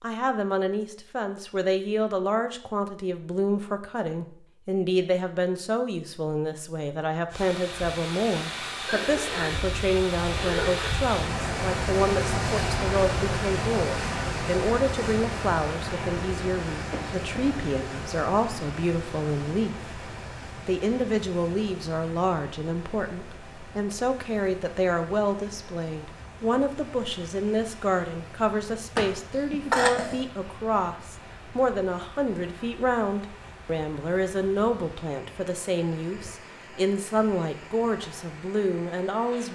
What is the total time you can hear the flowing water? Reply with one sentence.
You can hear the flowing water for 32 seconds altogether.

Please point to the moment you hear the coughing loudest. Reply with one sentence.
The loudest moment of the coughing is at 30 seconds.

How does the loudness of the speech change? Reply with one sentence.
The loudness of the speech stays about the same.